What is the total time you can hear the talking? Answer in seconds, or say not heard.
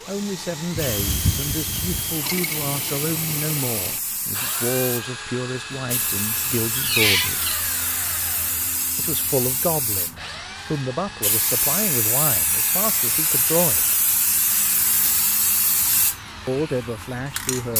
14 s.